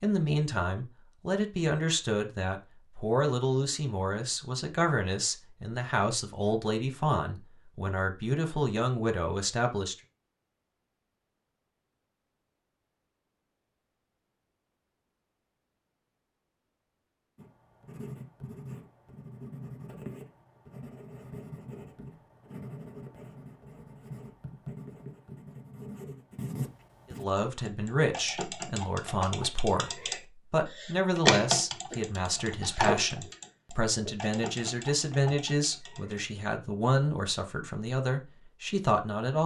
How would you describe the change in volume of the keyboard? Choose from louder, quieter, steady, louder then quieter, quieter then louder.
louder then quieter.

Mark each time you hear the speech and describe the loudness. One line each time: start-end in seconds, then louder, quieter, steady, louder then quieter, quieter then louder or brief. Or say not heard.
0.0-9.9 steady
27.1-39.4 steady.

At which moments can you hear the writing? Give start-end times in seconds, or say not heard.
17.4-27.2.